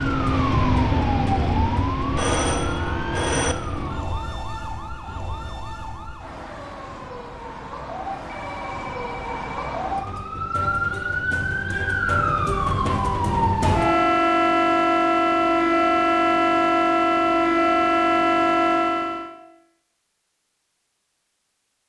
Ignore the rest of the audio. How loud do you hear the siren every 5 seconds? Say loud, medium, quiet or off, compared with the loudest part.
medium, quiet, loud, loud, off.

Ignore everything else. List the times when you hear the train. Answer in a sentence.
The train can't be heard in this clip.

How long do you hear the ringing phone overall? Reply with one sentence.
You can hear the ringing phone for 3 seconds altogether.